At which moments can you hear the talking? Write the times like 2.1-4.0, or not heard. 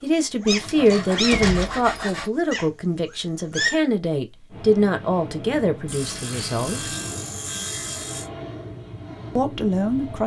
0.0-6.9, 9.3-10.2.